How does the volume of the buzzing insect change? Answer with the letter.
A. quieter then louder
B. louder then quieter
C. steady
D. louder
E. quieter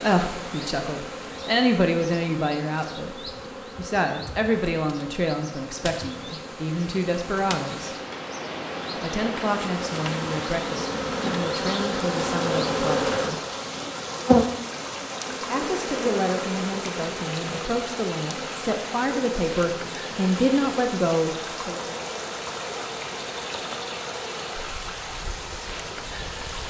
B.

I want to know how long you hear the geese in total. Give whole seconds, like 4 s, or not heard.
not heard.